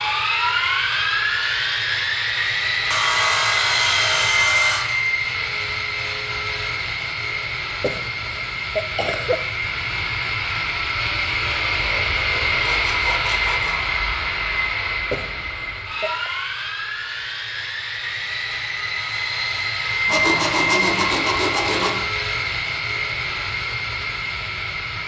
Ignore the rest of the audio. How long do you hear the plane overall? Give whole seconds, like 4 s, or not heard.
25 s.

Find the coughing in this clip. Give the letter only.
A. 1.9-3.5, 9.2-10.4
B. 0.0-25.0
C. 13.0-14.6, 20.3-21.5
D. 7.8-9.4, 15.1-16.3
D.